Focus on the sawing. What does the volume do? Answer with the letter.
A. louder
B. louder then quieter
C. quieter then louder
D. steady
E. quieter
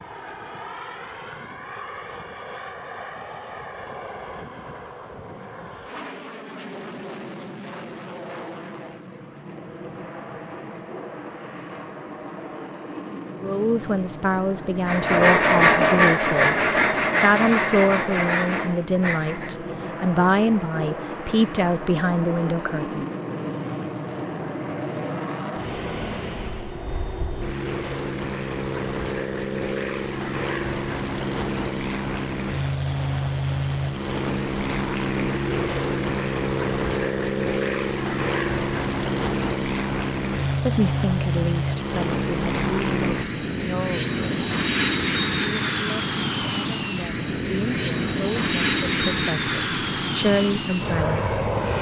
E.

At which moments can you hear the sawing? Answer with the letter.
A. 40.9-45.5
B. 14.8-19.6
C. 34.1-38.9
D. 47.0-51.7
B.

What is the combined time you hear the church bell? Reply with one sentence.
You can't hear the church bell here.